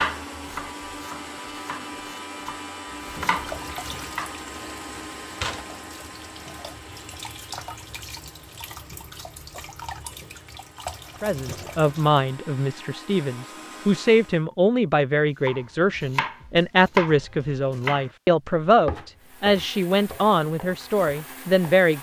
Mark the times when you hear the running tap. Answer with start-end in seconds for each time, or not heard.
3.0-12.2.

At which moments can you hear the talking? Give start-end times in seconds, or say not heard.
11.2-21.9.